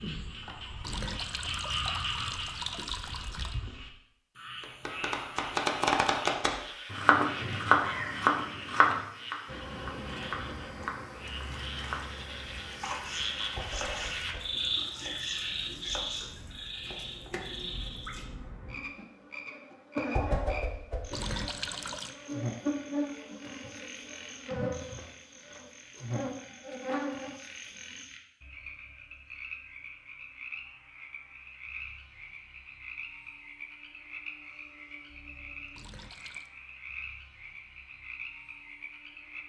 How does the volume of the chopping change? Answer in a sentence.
The volume of the chopping goes down.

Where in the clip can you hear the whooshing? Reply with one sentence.
The whooshing can be heard from 13.6 to 14.6 s and from 20.1 to 21.1 s.